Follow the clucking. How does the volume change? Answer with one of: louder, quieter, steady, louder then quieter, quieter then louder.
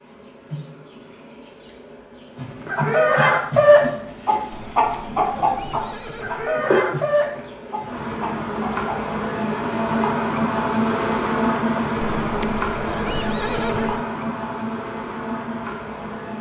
quieter.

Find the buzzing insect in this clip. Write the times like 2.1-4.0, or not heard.
0.0-16.3.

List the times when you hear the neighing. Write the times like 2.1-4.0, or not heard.
4.5-6.5, 12.0-14.1.